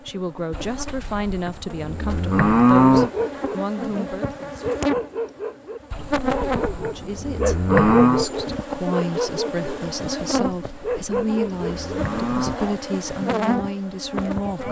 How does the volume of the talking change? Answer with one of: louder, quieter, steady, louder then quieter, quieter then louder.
steady.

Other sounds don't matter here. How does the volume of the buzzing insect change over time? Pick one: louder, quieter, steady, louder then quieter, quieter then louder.
louder.